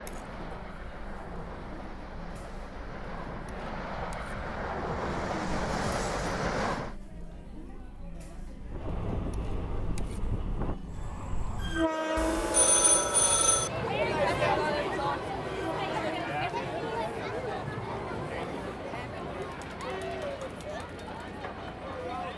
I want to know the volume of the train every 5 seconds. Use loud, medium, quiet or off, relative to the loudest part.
medium, loud, loud, medium, medium.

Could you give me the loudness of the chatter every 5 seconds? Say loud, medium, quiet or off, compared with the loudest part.
quiet, quiet, loud, loud, medium.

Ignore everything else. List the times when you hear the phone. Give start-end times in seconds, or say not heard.
12.2-13.7.